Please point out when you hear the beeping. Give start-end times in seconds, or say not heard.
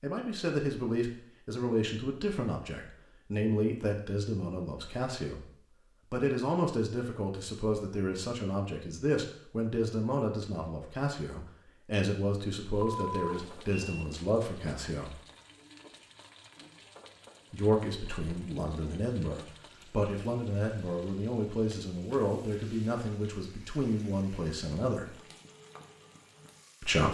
12.8-14.1.